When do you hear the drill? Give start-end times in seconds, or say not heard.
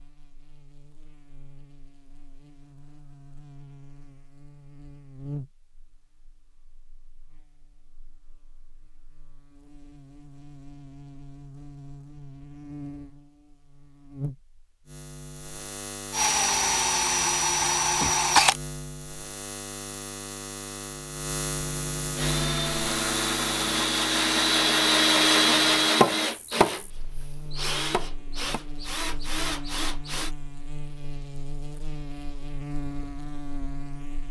16.1-18.6, 22.1-30.3.